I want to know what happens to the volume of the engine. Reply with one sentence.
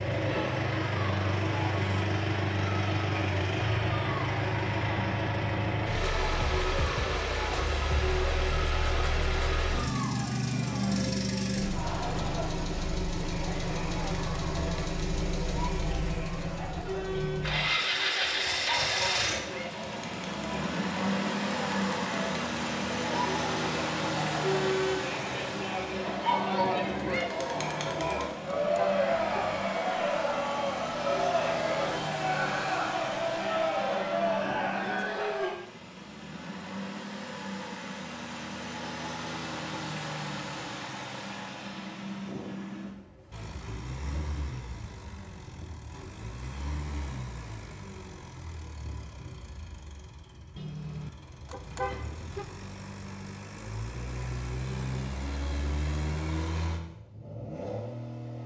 The loudness of the engine goes down.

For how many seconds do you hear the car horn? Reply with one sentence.
You can hear the car horn for 5 seconds altogether.